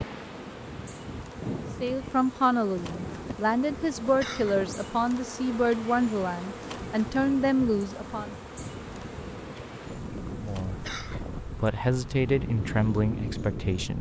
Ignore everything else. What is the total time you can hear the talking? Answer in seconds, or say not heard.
10 s.